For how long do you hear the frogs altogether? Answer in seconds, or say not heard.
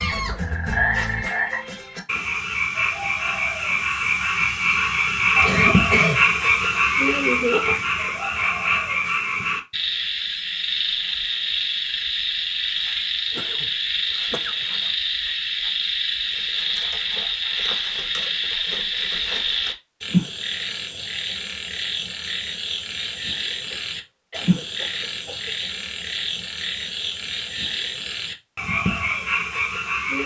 30 s.